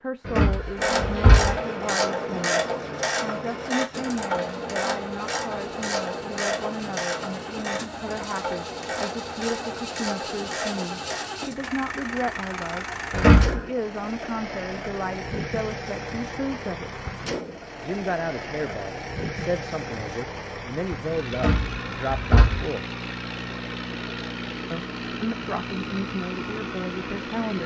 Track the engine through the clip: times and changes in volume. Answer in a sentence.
You can hear the engine from 0.0 to 27.6 s, getting louder.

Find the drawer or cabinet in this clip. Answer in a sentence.
You can hear the drawer or cabinet from 0.2 to 1.6 s, from 13.1 to 13.6 s and from 21.3 to 22.6 s.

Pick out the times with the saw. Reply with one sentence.
You can't hear the saw here.